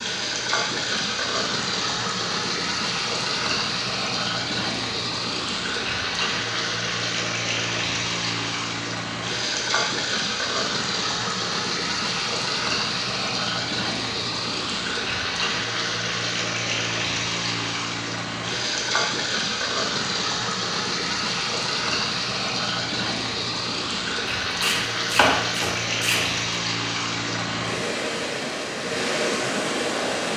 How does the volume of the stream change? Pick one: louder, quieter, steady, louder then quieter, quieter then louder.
steady.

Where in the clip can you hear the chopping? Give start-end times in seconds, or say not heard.
24.5-26.3.